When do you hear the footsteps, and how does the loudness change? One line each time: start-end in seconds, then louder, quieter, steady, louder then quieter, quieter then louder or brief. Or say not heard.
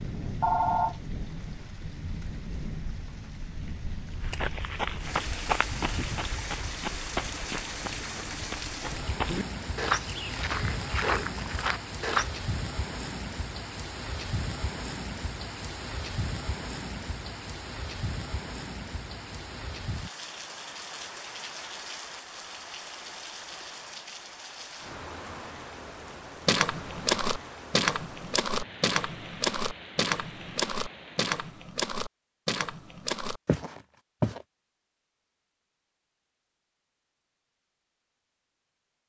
4.2-12.3 quieter then louder
26.4-34.5 quieter.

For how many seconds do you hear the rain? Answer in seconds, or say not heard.
32 s.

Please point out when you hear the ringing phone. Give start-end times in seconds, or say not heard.
0.4-0.9.